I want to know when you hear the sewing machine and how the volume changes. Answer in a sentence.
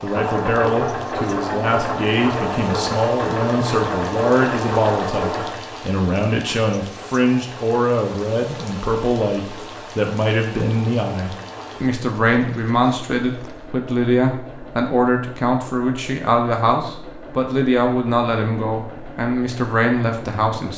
The sewing machine can be heard from 0.0 to 20.7 s, getting quieter.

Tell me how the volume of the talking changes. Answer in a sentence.
The volume of the talking stays about the same.